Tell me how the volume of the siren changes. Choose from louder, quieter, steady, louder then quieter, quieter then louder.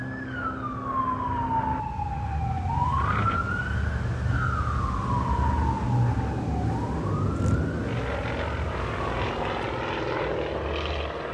quieter.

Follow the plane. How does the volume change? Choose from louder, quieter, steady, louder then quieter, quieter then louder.
louder.